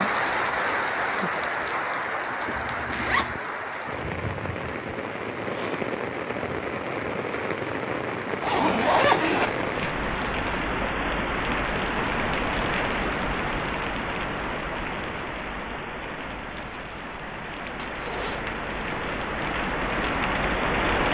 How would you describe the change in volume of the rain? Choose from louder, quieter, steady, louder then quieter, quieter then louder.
steady.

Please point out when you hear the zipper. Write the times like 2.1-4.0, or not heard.
2.5-3.4, 8.4-10.9, 17.2-18.6.